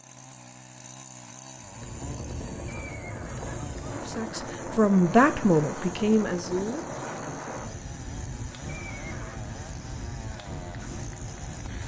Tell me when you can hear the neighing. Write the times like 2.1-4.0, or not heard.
2.6-4.0, 8.7-9.4.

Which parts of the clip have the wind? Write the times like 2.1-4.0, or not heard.
1.6-11.8.